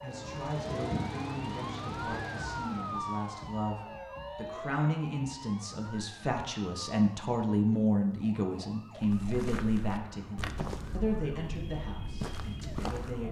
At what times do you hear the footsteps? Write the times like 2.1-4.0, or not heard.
9.0-13.2.